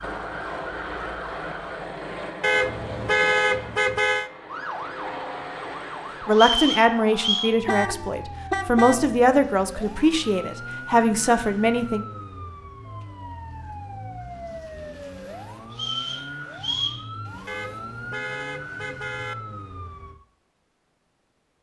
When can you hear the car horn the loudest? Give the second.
3 s.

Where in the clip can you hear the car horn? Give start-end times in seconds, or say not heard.
2.4-4.3, 7.7-9.1, 17.4-19.4.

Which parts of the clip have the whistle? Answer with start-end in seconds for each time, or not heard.
6.3-7.5, 15.7-17.0.